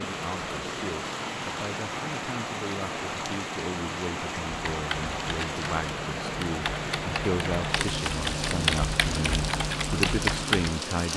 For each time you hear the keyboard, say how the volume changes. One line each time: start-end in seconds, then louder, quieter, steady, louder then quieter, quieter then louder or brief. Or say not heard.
4.7-10.8 louder.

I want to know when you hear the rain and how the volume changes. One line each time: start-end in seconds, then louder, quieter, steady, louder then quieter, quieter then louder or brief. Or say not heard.
0.0-11.1 steady.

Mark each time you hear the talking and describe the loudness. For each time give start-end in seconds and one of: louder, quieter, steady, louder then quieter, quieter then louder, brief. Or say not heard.
0.0-11.1 louder.